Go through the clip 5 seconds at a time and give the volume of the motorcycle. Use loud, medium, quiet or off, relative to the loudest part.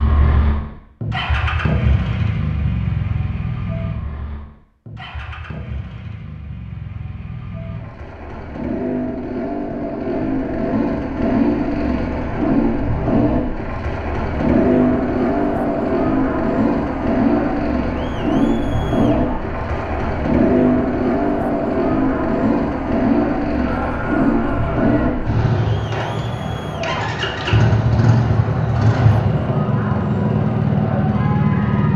medium, medium, loud, loud, loud, loud, loud.